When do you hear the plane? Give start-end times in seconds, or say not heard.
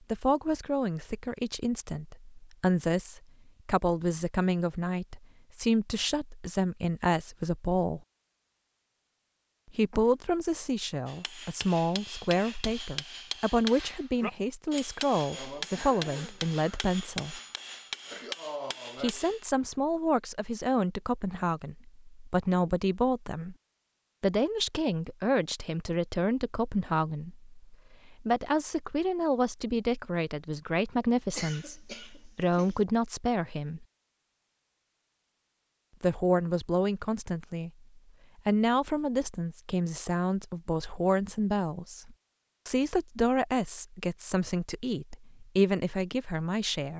not heard.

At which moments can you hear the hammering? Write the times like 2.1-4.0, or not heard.
11.1-19.4.